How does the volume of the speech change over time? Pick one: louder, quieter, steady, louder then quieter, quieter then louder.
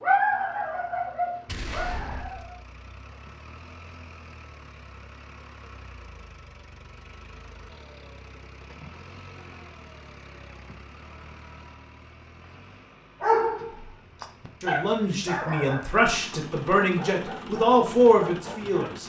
louder.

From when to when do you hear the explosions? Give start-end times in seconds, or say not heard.
1.4-2.5.